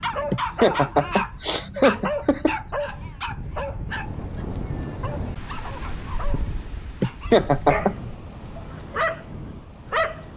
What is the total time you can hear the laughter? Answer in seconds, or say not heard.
3 s.